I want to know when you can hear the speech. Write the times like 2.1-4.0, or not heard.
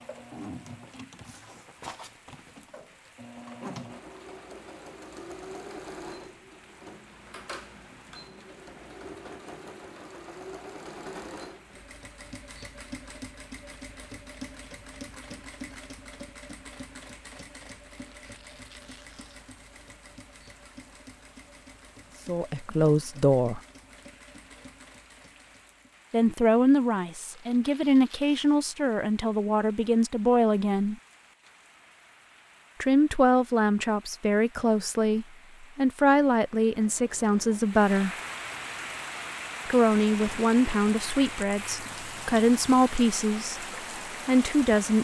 22.2-23.6, 26.1-30.9, 32.8-38.1, 39.6-43.6, 44.2-44.9.